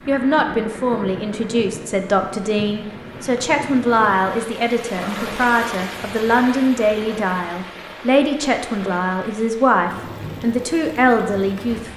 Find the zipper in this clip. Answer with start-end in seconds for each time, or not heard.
4.9-5.4.